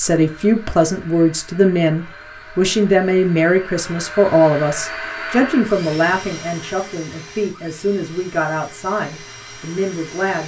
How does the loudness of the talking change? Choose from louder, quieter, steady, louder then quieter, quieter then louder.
quieter.